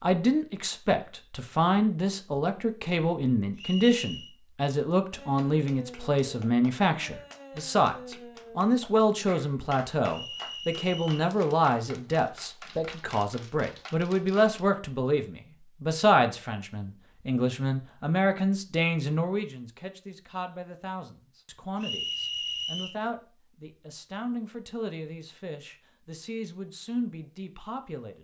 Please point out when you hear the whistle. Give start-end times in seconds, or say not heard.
3.5-4.3, 10.1-11.2, 21.8-22.9.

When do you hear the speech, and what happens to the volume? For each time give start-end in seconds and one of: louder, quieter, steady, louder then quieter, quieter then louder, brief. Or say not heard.
0.0-28.1 quieter.